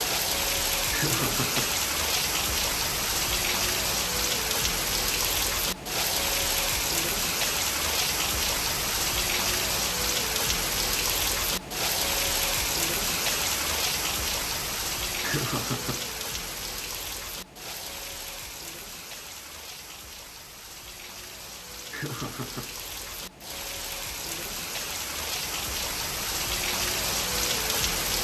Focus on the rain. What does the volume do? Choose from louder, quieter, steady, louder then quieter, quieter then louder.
quieter then louder.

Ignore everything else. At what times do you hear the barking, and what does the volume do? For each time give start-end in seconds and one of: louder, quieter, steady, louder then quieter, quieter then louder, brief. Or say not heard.
not heard.